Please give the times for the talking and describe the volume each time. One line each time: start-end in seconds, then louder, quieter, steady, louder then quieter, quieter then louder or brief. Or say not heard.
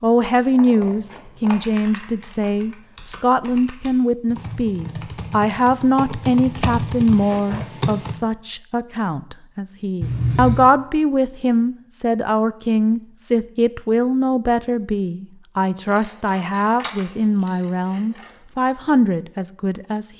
0.0-20.1 steady.